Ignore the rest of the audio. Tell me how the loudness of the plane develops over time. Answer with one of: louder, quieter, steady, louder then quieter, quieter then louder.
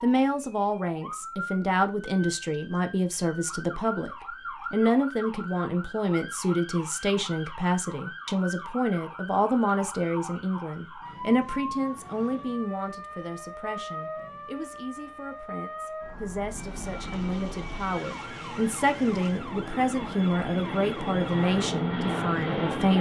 louder.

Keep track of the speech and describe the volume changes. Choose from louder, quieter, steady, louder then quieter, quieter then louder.
quieter then louder.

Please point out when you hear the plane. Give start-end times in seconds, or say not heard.
16.5-22.9.